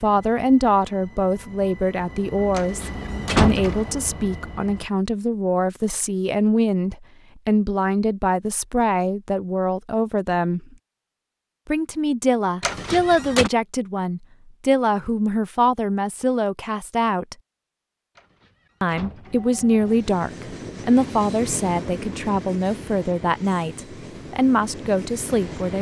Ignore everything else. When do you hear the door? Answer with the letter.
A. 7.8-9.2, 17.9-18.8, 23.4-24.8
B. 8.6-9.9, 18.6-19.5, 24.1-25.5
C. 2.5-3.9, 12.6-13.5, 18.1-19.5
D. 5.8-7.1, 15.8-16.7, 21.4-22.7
C.